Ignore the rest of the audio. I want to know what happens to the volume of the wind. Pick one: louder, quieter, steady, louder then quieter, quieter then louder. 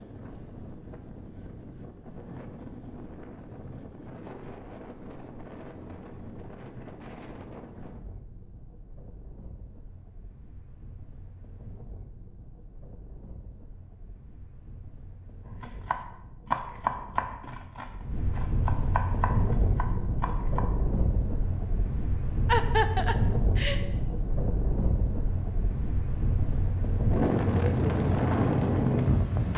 quieter then louder.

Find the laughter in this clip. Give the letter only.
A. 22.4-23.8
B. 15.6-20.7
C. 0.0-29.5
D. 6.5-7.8
A.